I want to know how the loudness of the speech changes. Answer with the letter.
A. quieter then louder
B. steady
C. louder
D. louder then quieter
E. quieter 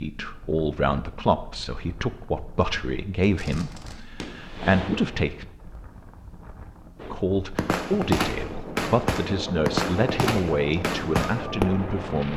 B.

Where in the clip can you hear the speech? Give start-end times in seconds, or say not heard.
0.0-5.5, 7.1-12.3.